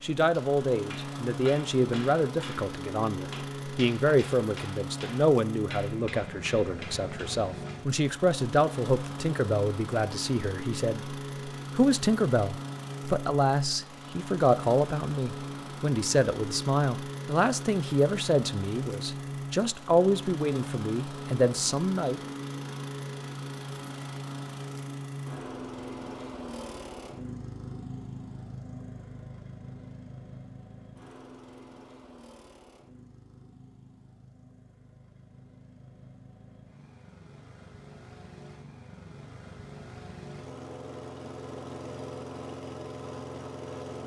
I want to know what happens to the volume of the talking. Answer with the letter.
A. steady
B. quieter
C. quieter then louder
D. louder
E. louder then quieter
A.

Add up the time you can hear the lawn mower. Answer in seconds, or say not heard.
44 s.